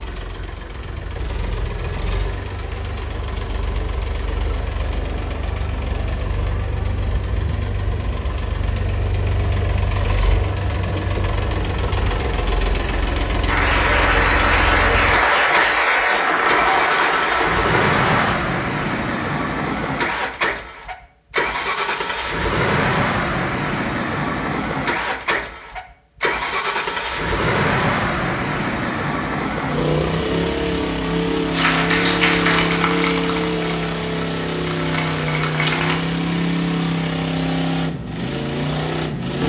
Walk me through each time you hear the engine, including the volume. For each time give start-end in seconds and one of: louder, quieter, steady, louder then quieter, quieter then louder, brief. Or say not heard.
0.0-39.4 louder.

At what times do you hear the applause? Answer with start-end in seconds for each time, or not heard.
13.4-18.4, 31.5-36.0.